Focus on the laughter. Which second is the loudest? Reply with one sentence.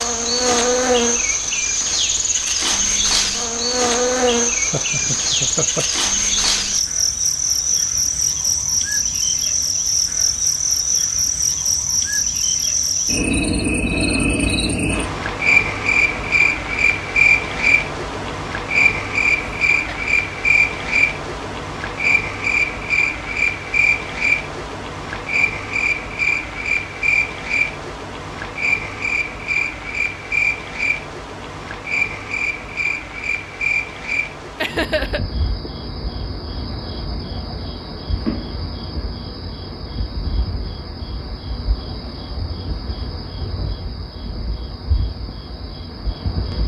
The volume of the laughter peaks at 35 seconds.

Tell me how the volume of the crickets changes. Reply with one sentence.
The loudness of the crickets goes down.